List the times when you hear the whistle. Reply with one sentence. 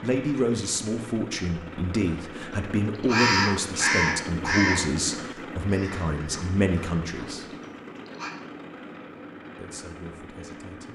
The whistle can't be heard in this clip.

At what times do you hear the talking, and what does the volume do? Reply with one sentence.
You can hear the talking from 0.0 to 7.5 s, at a steady volume; and briefly from 9.6 to 10.9 s.